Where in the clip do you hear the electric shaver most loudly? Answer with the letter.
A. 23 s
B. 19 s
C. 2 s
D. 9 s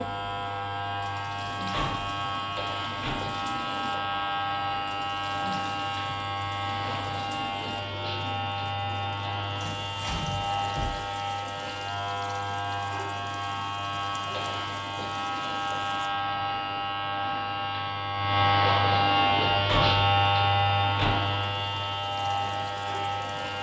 B.